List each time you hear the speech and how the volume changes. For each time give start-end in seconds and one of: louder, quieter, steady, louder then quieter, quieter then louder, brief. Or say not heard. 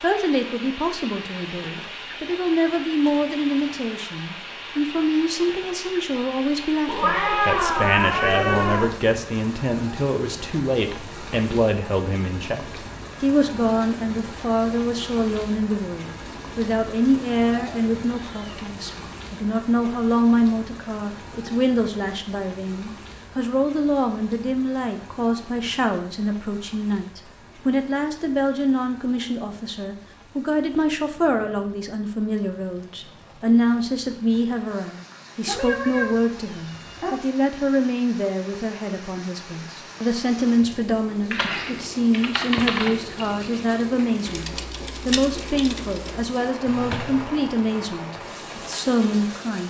0.0-49.6 steady.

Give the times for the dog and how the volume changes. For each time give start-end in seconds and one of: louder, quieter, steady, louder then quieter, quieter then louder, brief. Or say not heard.
not heard.